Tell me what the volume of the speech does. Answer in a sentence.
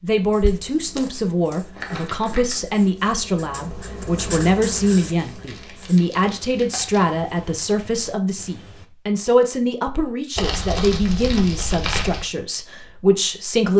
The volume of the speech stays about the same.